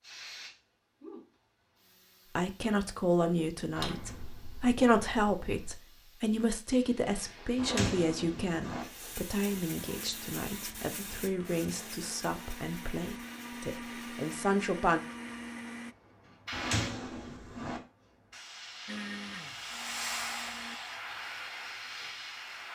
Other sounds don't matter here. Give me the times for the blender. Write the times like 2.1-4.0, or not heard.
9.9-15.9, 18.9-20.8.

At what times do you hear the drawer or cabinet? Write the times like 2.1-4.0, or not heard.
3.8-5.8, 7.5-8.8, 16.5-17.8.